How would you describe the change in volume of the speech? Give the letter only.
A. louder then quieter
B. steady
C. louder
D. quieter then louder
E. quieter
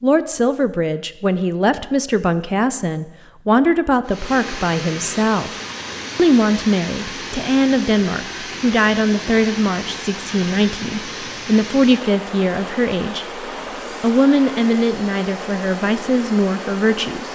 B.